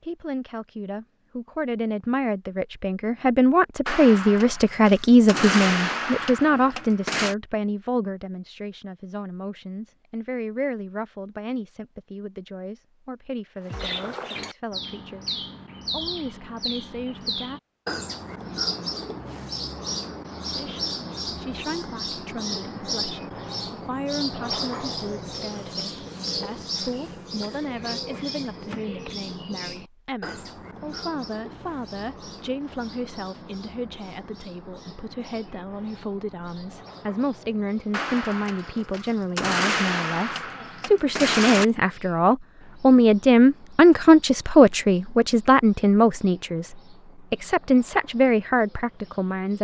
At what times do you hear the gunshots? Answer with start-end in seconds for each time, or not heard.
3.9-7.3, 37.9-41.6.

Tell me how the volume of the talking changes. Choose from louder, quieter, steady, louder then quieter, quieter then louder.
quieter then louder.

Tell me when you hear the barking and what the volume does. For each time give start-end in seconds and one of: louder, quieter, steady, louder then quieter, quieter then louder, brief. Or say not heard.
not heard.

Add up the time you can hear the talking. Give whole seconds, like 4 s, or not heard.
47 s.